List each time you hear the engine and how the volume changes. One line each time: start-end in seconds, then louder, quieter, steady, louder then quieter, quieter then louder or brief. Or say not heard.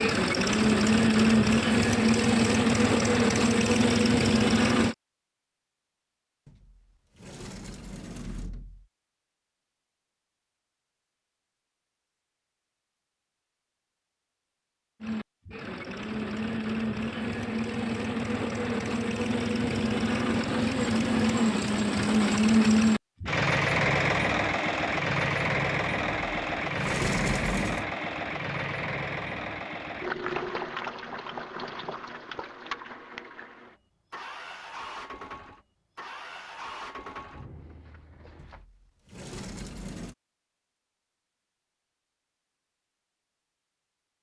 0.0-5.0 steady
15.0-38.6 louder then quieter.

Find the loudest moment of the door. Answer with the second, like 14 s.
27 s.